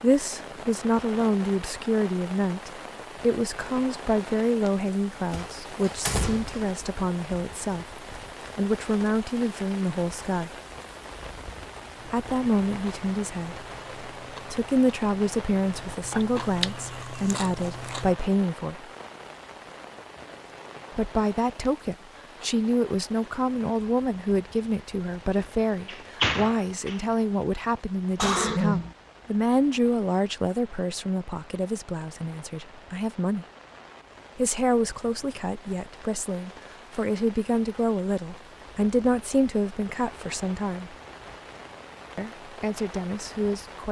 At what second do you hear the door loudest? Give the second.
26 s.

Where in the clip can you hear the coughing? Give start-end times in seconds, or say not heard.
28.1-28.9.